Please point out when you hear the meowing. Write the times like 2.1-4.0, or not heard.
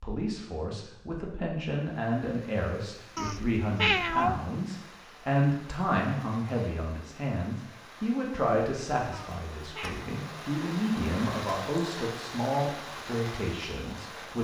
3.1-4.3, 9.1-10.0.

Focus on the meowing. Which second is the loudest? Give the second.
4 s.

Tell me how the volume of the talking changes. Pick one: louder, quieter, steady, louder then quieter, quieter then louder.
steady.